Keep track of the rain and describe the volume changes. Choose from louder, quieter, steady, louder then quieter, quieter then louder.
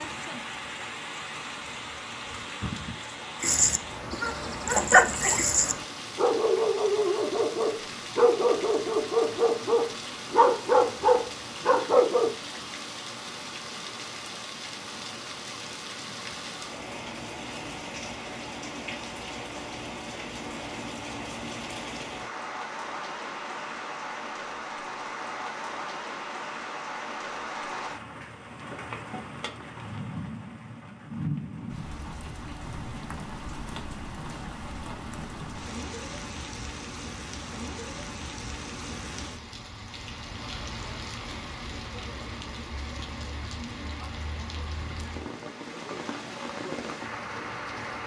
steady.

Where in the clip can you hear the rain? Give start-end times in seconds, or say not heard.
0.0-48.0.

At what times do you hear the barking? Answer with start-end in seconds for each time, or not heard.
3.4-12.3.